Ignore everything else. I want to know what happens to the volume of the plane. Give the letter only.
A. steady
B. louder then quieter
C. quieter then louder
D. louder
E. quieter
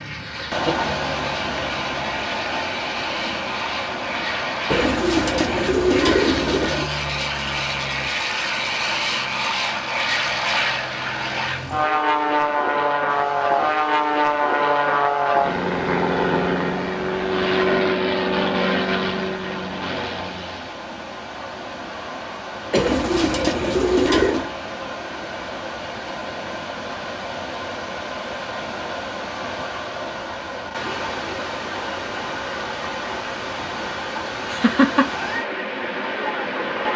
D.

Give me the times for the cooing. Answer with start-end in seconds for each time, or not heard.
4.7-6.8, 22.8-24.5.